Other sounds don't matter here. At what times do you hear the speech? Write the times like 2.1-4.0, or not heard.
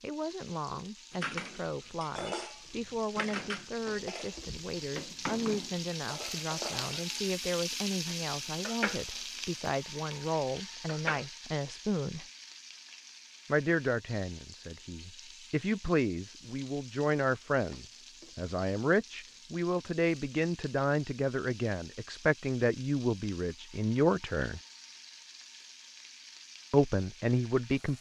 0.0-12.2, 13.4-24.6, 26.7-27.9.